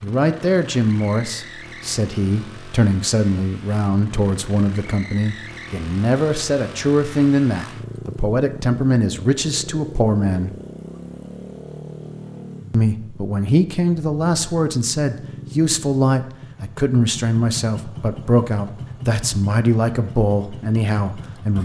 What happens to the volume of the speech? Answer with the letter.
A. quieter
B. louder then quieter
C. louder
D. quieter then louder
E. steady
E.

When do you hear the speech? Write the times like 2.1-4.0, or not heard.
0.0-10.6, 12.7-21.6.